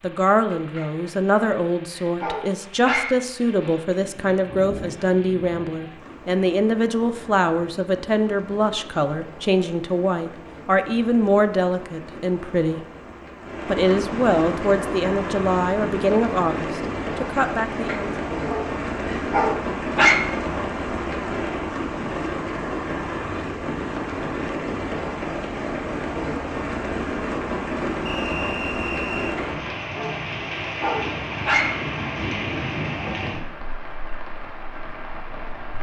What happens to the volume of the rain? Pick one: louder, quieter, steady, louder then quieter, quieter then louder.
louder.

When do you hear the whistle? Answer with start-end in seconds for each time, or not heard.
28.1-29.4.